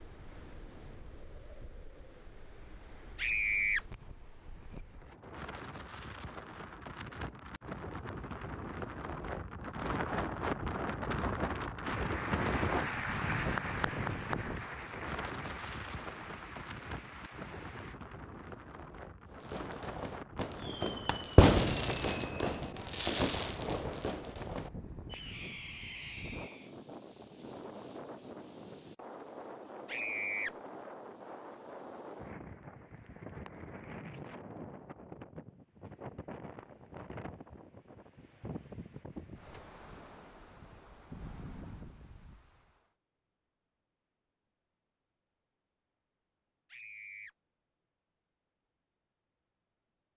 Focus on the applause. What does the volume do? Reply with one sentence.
The volume of the applause goes down.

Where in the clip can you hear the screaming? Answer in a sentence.
You can hear the screaming from 3.1 to 3.9 s, from 29.9 to 30.6 s and from 46.7 to 47.3 s.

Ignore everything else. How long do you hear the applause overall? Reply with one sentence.
The applause can be heard for 6 seconds in total.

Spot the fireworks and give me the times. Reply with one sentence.
The fireworks can be heard from 19.4 to 26.8 s.